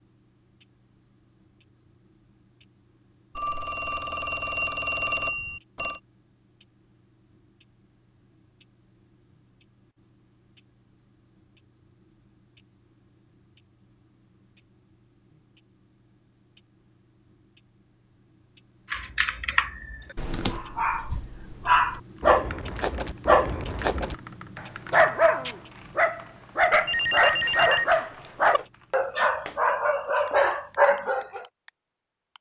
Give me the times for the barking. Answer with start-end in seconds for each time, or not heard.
20.4-31.4.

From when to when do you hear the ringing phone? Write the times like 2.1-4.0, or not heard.
3.4-6.0, 26.9-28.6.